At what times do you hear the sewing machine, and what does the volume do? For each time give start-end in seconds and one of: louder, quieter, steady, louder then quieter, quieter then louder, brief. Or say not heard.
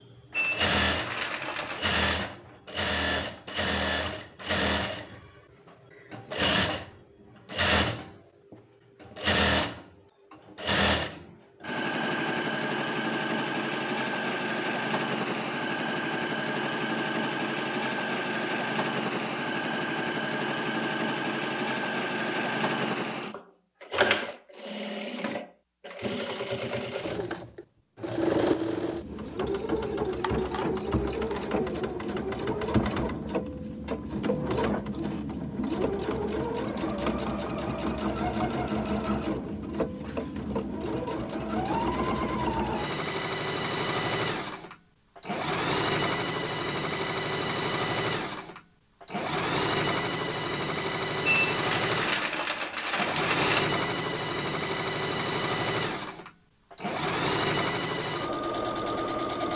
0.1-59.5 steady.